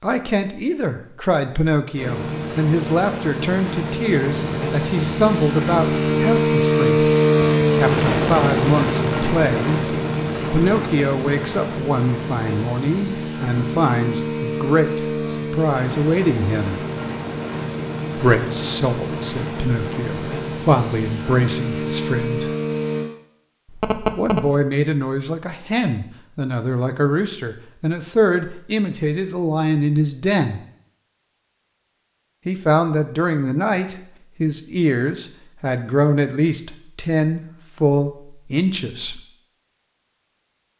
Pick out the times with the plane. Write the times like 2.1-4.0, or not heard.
1.9-23.1.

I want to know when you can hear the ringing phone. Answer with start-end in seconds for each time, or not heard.
23.6-24.6.